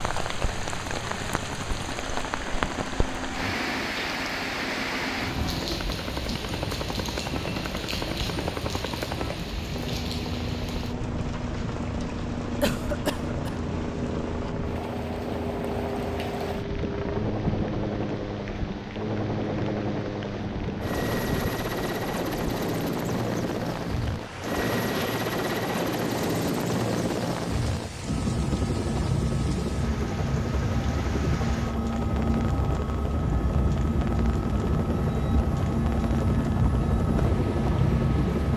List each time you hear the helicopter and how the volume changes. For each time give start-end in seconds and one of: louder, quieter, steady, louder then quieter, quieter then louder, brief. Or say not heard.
0.0-38.5 louder.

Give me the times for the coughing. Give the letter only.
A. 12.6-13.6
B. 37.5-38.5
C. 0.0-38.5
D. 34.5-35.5
A.